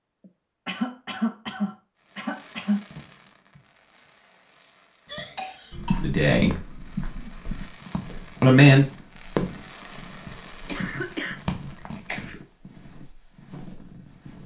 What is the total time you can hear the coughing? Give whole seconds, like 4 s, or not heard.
5 s.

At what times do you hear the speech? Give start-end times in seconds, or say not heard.
6.0-6.5, 8.4-8.8.